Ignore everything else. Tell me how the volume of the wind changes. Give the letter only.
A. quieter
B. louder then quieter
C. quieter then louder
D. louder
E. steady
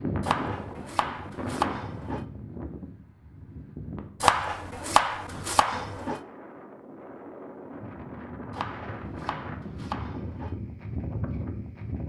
C.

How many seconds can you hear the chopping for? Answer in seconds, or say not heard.
6 s.